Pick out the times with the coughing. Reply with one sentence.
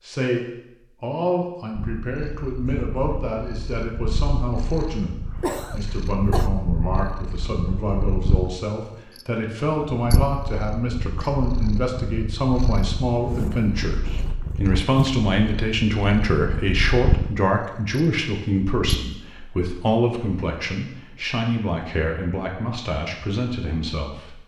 You can hear the coughing from 5.3 to 6.5 s.